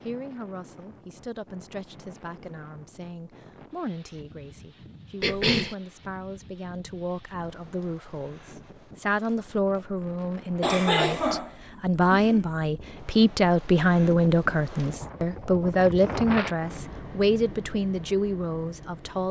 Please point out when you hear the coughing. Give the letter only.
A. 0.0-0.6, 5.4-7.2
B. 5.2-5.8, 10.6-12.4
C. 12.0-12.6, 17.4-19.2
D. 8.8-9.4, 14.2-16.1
B.